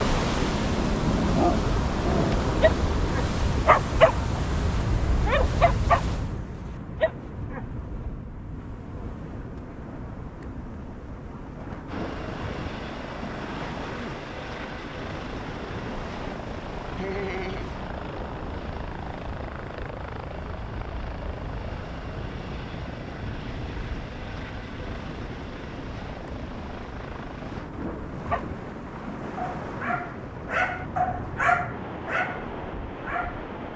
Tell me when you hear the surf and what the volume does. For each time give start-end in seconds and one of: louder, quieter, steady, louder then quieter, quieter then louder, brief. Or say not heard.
0.0-33.7 quieter.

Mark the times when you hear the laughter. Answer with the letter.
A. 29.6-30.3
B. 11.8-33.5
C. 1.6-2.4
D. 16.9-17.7
D.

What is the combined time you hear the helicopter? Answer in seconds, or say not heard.
22 s.